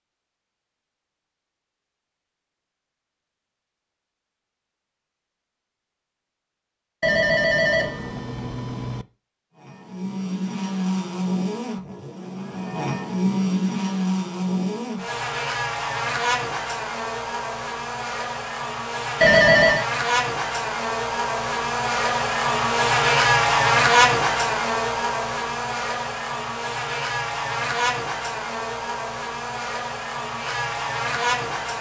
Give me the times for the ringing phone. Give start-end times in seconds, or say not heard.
7.0-9.1, 19.2-19.9.